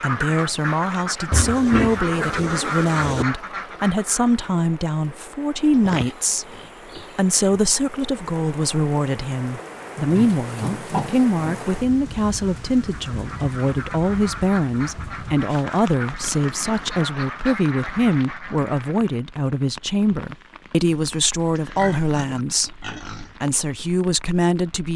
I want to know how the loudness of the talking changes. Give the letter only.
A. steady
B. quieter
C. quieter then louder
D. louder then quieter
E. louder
A.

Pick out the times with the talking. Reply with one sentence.
You can hear the talking from 0.0 to 6.5 s and from 7.2 to 24.9 s.